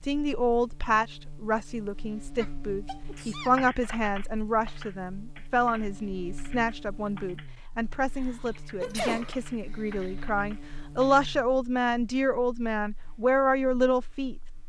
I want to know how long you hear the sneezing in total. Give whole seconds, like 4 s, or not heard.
3 s.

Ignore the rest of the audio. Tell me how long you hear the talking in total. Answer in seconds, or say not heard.
14 s.